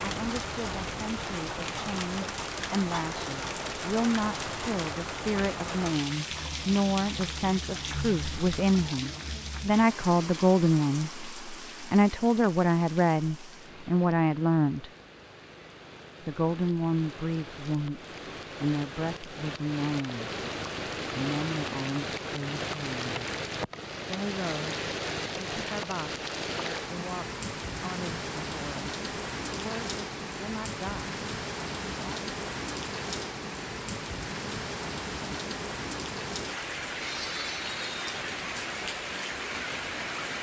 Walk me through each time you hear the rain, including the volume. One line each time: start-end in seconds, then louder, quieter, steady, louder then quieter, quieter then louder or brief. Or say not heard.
0.0-40.3 quieter then louder.